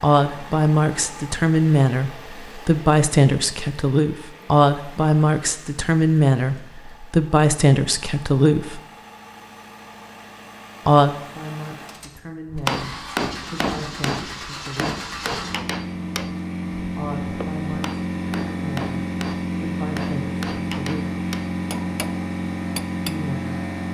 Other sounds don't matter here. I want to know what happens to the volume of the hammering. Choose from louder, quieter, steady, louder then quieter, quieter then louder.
quieter.